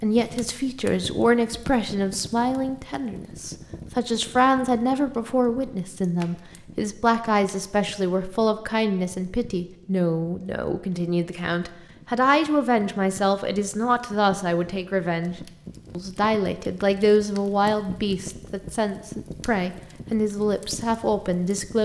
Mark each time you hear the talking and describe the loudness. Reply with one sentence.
The talking can be heard from 0.0 to 21.8 s, at a steady volume.